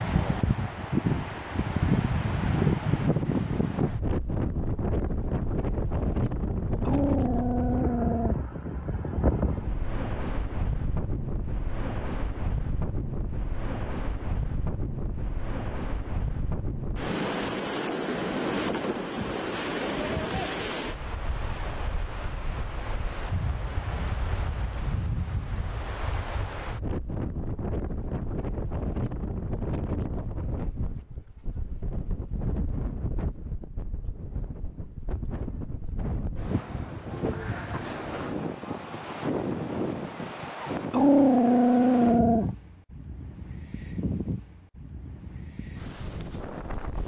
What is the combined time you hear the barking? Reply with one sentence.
The barking can be heard for 3 seconds in total.